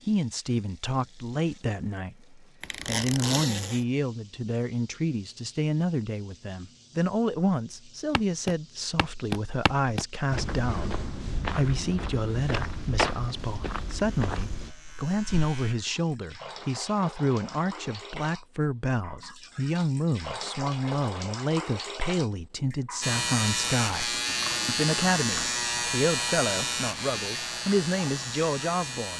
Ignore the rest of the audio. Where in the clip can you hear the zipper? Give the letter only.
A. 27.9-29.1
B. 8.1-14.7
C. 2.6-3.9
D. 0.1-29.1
C.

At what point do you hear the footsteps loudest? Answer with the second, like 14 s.
13 s.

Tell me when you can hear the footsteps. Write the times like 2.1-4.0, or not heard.
8.1-14.7.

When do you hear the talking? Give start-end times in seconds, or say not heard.
0.1-29.1.